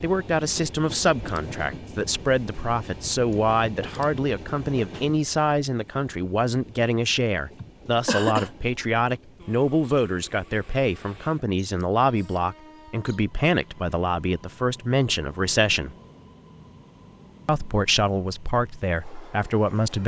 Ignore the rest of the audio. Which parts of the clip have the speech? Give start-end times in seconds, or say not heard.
0.0-15.9, 17.4-20.0.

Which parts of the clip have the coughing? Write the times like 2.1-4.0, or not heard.
7.6-8.5.